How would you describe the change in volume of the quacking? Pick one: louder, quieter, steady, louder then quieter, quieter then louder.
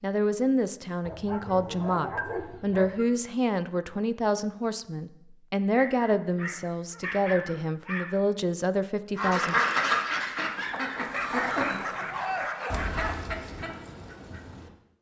quieter.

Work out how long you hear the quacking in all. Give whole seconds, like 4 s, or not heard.
6 s.